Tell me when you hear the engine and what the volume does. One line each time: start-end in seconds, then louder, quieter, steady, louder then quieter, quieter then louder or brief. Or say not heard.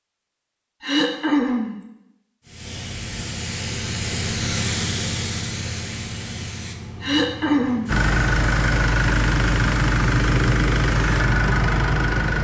7.8-12.3 steady.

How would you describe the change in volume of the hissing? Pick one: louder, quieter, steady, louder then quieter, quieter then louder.
quieter.